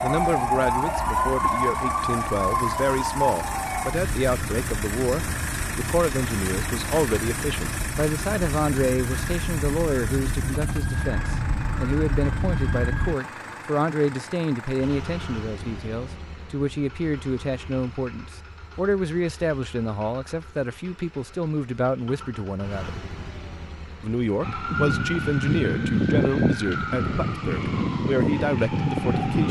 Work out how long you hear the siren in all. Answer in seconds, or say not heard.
18 s.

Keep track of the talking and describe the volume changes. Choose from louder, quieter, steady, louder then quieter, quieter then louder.
steady.